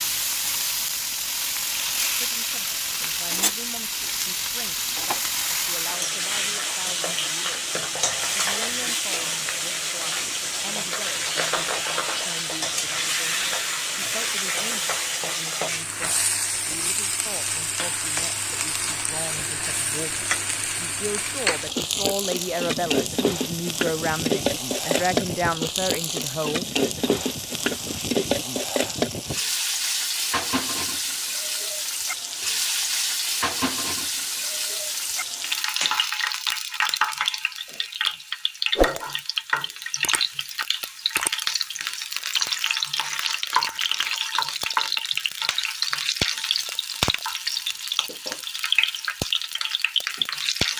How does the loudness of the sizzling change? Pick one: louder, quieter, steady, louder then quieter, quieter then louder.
steady.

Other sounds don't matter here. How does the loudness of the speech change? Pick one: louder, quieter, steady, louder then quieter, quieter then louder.
louder.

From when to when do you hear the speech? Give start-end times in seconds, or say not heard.
2.2-26.6.